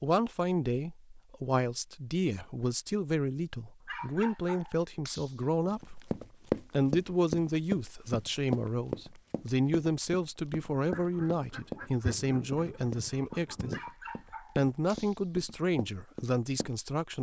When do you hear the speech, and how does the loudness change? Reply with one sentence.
You can hear the speech from 0.0 to 13.8 s, at a steady volume; and briefly from 14.6 to 17.1 s.